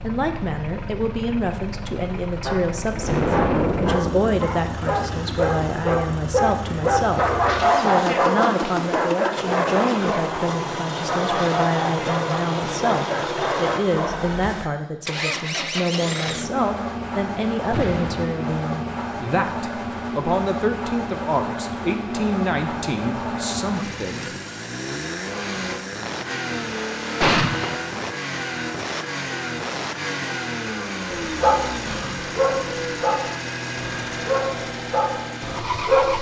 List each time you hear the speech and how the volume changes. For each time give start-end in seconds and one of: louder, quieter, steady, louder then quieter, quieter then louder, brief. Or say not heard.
0.0-24.3 steady.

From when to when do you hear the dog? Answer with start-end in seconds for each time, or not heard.
2.4-14.3, 31.2-36.1.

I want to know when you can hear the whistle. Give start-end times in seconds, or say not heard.
not heard.